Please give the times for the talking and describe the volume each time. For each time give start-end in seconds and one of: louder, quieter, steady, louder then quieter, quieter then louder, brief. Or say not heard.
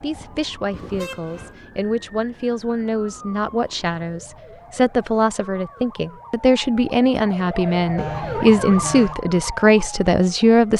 0.0-10.7 louder.